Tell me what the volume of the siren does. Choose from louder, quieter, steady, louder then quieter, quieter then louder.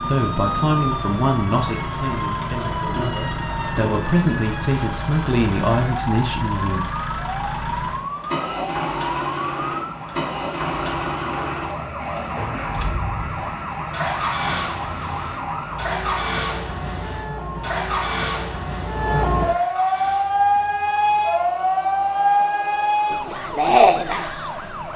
louder.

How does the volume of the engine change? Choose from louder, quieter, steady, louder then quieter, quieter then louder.
quieter.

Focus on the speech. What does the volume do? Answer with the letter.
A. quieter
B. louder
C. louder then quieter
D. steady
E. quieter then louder
E.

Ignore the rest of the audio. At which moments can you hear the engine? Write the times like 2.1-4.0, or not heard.
0.0-24.9.